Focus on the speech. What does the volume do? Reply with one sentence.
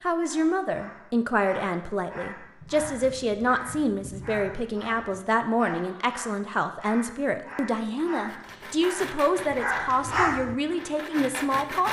The loudness of the speech stays about the same.